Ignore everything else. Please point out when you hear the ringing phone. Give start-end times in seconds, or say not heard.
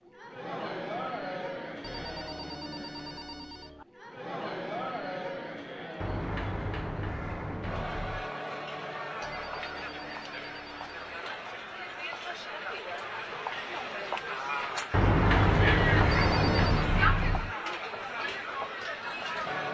1.8-3.9, 9.2-11.2, 16.1-16.9.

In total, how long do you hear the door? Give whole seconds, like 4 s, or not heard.
5 s.